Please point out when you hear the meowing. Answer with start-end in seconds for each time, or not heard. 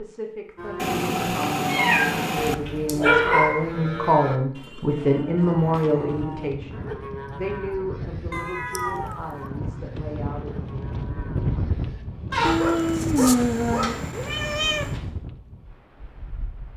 0.8-2.5, 8.3-9.5, 12.4-14.9.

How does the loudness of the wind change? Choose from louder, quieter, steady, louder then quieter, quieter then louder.
louder then quieter.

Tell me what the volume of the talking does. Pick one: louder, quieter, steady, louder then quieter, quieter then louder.
louder then quieter.